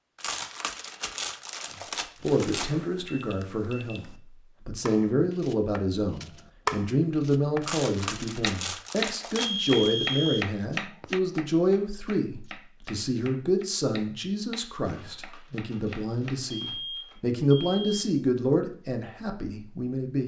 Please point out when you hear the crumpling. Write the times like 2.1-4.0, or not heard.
0.1-2.8, 7.6-9.9, 14.8-17.2.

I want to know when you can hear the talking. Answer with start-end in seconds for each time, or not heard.
2.2-20.2.